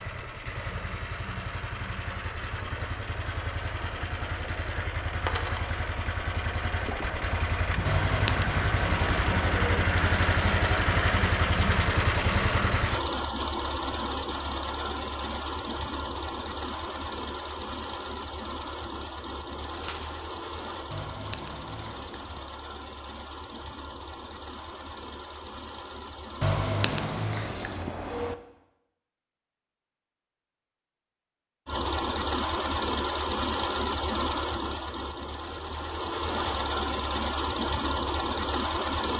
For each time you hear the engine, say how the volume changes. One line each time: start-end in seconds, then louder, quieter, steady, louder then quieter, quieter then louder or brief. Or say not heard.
0.0-27.2 louder then quieter
31.6-39.1 quieter then louder.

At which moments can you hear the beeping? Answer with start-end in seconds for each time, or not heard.
7.8-9.8, 20.9-22.5, 26.4-28.4.